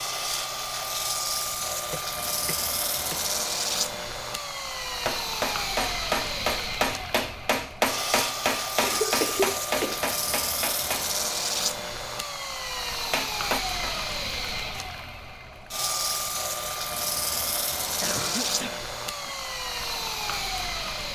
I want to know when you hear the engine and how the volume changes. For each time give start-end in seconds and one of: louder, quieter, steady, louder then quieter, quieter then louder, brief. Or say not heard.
0.0-21.1 steady.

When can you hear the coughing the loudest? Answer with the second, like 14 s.
9 s.